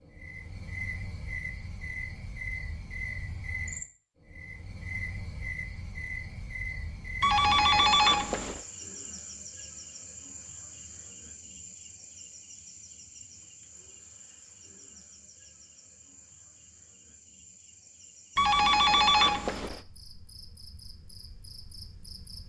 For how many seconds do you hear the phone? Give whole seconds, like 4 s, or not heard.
3 s.